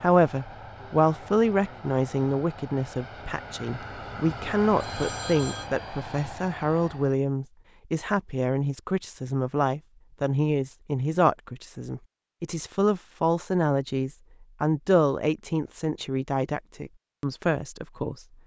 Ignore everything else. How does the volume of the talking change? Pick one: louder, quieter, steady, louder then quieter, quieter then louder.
steady.